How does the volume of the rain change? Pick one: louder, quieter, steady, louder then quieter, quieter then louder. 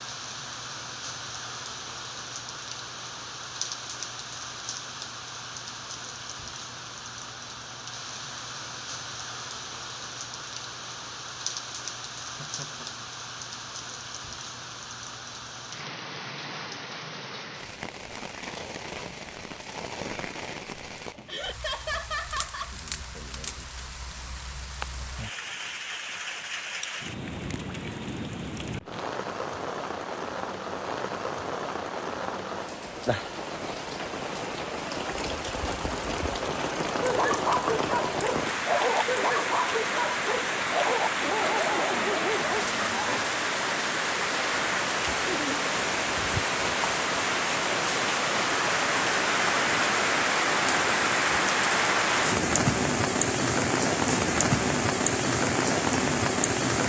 louder.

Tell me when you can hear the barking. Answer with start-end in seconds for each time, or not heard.
37.0-43.2.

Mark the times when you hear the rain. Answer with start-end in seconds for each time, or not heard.
0.0-56.8.